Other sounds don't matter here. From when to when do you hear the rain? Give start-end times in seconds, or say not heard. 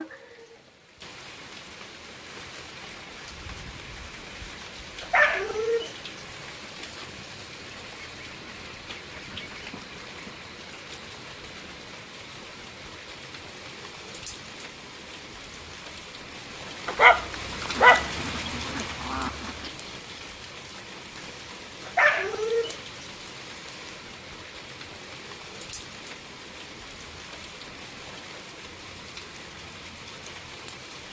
0.0-31.0.